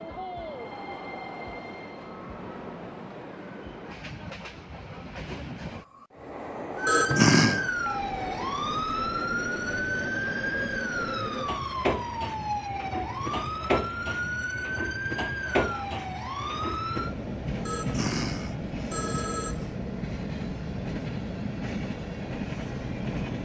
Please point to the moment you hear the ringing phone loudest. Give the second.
7 s.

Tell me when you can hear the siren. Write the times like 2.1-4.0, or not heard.
6.8-17.1.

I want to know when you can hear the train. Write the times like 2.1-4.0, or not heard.
0.0-23.3.